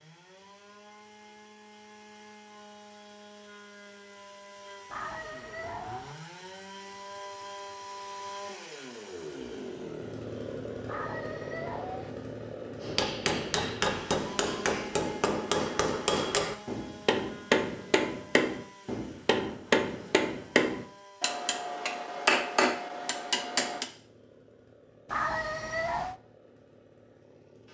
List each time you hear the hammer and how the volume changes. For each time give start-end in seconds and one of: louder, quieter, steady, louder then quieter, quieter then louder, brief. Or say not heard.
12.8-23.9 steady.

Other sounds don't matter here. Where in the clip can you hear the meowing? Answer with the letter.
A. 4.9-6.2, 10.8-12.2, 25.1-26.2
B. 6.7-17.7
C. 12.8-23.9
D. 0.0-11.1
A.